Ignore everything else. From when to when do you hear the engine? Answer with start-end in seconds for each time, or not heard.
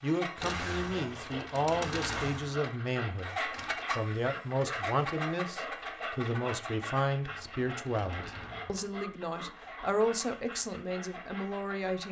0.0-12.0.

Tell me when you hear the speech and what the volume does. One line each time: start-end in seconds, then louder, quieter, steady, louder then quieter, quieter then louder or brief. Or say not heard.
0.0-12.0 steady.